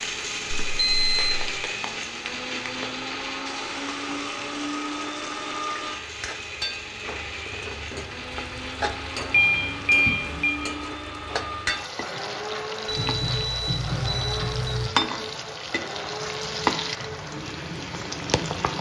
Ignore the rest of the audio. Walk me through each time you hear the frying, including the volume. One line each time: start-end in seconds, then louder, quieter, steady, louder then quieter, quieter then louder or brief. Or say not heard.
0.0-18.7 louder.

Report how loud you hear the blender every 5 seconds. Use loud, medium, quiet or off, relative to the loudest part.
loud, loud, loud, medium.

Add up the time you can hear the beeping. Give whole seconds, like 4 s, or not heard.
4 s.